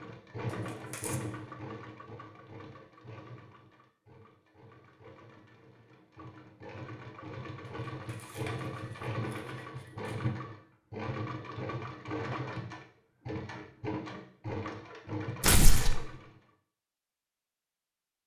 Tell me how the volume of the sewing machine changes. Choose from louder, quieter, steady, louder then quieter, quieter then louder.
quieter then louder.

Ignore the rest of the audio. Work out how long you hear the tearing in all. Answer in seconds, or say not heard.
4 s.